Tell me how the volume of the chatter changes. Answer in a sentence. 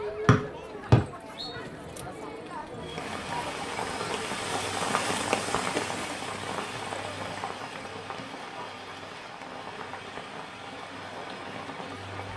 The loudness of the chatter goes down.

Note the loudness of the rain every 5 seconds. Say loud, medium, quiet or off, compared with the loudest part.
loud, loud, medium.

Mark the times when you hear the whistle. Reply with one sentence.
The whistle can be heard from 0.2 to 1.5 s.